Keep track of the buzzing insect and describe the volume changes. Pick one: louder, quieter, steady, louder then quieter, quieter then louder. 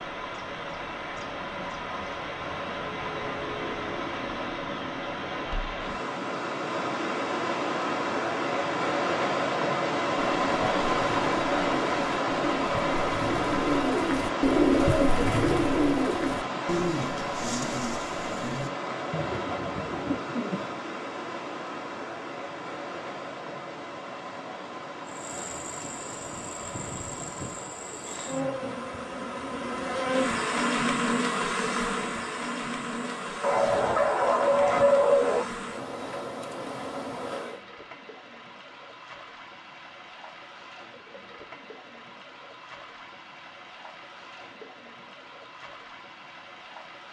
louder then quieter.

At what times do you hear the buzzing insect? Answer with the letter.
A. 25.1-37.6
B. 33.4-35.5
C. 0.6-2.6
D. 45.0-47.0
A.